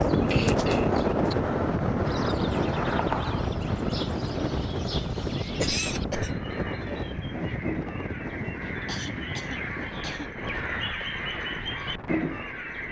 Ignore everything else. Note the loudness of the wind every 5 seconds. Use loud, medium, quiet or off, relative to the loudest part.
loud, medium, quiet.